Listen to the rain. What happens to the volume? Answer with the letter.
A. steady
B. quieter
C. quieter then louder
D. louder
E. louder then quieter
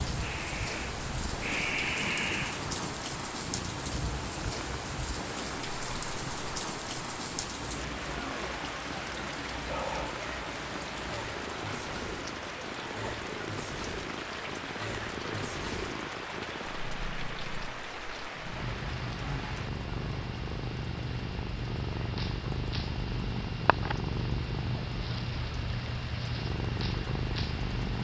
B.